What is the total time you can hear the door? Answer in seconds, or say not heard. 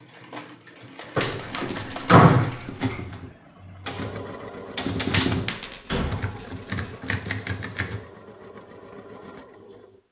2 s.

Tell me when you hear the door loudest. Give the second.
2 s.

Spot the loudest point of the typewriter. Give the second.
5 s.